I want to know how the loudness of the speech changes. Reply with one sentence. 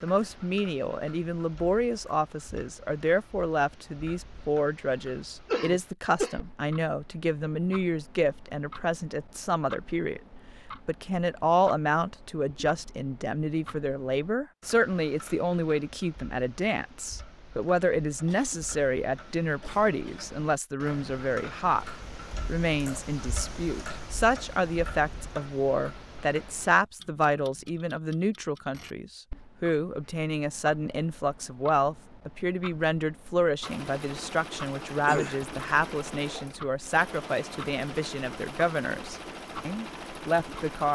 The loudness of the speech stays about the same.